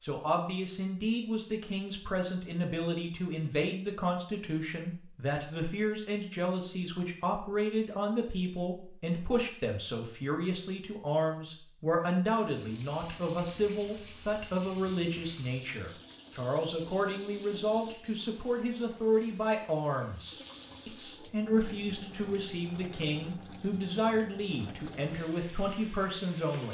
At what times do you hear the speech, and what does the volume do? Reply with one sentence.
You can hear the speech from 0.0 to 26.6 s, at a steady volume.